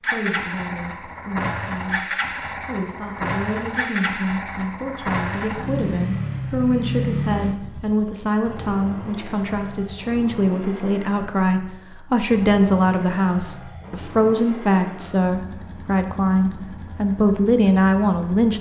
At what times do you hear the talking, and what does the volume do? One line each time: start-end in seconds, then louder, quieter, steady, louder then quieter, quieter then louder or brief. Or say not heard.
0.0-18.5 louder.